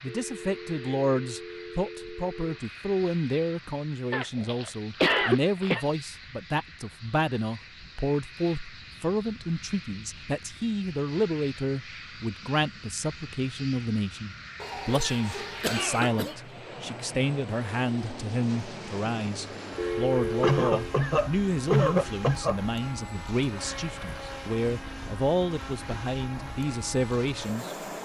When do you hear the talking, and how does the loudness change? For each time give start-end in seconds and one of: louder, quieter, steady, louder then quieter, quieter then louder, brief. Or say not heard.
0.0-27.8 steady.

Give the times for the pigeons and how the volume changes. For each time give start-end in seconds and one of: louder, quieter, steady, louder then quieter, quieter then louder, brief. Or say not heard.
not heard.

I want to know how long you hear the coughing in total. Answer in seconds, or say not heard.
6 s.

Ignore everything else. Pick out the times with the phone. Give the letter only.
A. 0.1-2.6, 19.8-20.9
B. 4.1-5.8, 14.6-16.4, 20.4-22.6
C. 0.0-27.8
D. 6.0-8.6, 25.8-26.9
A.